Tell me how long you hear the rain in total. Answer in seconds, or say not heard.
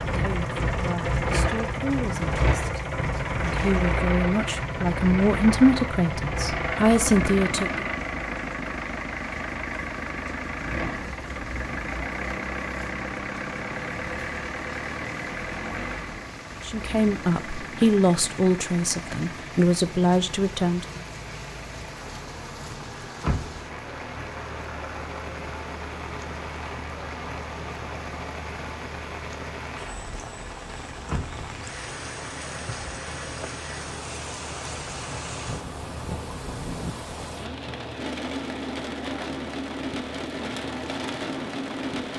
42 s.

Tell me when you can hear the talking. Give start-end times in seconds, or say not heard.
0.1-7.8, 16.6-21.0.